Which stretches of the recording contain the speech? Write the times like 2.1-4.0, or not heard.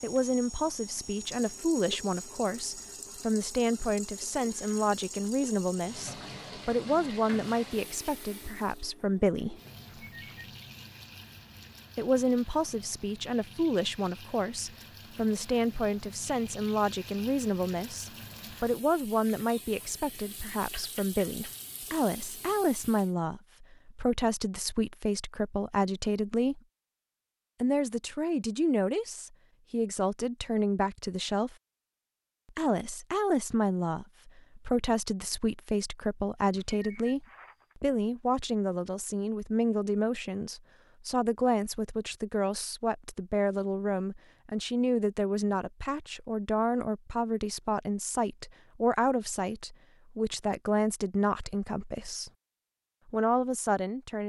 0.0-9.6, 11.9-26.6, 27.6-31.6, 32.5-52.3, 53.0-54.2.